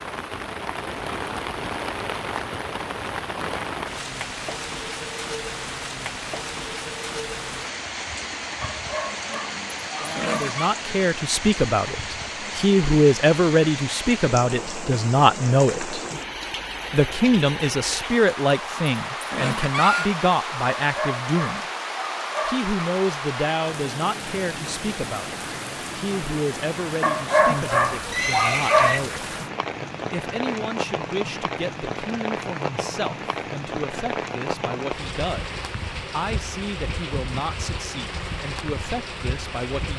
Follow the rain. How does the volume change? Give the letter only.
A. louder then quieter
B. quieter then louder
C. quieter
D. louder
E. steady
E.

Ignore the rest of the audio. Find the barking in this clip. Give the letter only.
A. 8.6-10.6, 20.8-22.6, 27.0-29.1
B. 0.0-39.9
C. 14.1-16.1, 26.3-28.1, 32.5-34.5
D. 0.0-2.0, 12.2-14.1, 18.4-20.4
A.